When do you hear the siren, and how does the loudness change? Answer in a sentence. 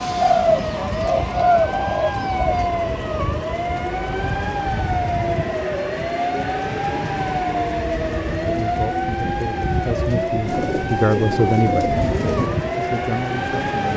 You can hear the siren from 0.0 to 13.9 s, at a steady volume.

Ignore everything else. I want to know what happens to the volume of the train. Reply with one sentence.
The volume of the train stays about the same.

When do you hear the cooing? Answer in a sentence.
The cooing can be heard from 0.2 to 2.6 s and from 10.4 to 12.5 s.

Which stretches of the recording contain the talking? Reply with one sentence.
You can hear the talking from 8.4 to 11.8 s and from 12.8 to 13.9 s.